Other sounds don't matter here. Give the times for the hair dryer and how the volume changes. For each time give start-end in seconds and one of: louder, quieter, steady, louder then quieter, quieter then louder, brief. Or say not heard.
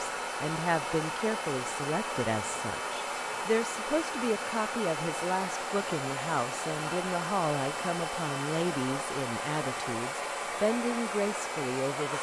0.0-12.1 steady.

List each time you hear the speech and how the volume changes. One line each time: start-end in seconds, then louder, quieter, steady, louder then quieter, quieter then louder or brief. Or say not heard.
0.0-12.1 steady.